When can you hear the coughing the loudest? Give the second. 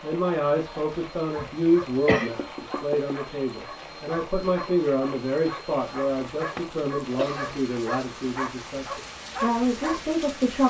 2 s.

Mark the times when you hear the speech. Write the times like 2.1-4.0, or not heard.
0.0-10.6.